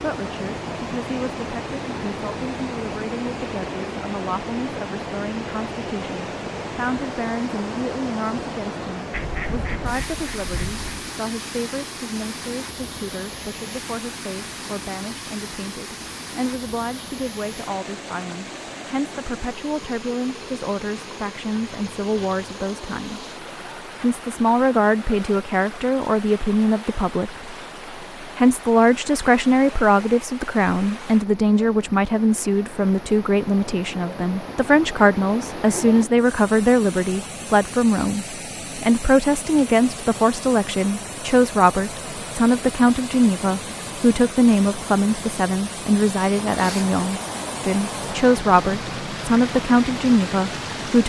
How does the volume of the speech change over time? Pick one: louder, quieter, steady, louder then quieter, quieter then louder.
louder.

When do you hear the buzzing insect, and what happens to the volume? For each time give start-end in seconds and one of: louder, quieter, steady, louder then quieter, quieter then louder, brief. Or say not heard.
not heard.